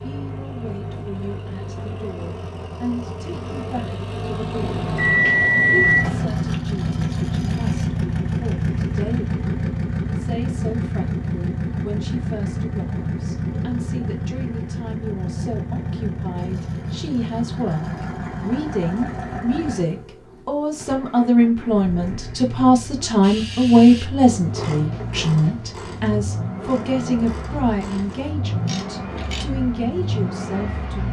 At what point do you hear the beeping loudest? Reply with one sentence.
The loudest moment of the beeping is at 6 seconds.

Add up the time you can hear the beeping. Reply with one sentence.
The beeping can be heard for 2 seconds in total.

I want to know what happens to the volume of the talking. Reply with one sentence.
The volume of the talking goes up, then down.